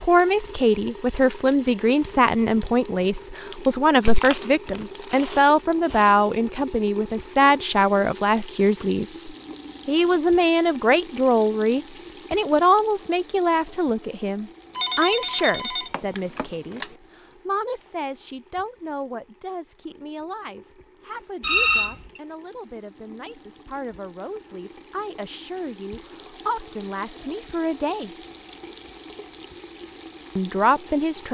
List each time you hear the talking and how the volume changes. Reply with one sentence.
The talking can be heard from 0.0 to 28.1 s, getting quieter; and briefly from 30.4 to 31.2 s.